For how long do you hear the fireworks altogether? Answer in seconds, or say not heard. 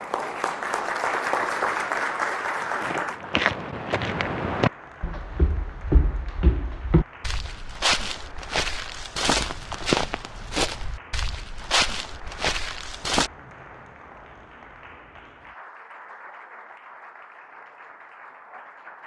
not heard.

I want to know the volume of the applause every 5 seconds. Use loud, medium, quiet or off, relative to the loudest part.
loud, quiet, quiet, quiet.